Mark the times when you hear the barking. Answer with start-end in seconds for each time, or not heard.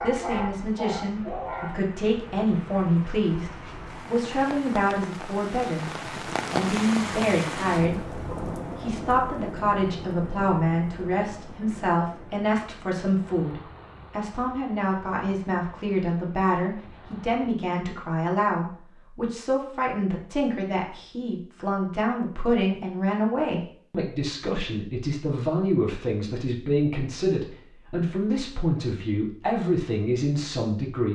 0.0-1.8.